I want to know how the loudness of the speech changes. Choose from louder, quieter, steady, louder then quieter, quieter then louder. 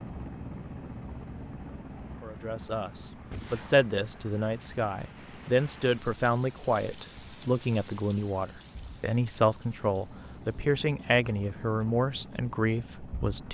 steady.